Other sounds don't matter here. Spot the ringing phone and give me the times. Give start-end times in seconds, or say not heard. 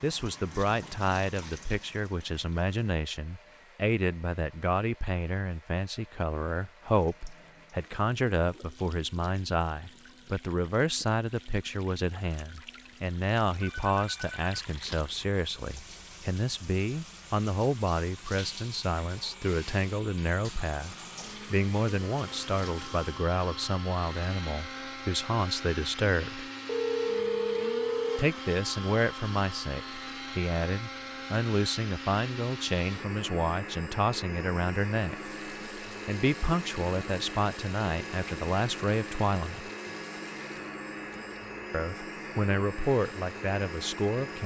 13.6-14.4, 26.6-28.3.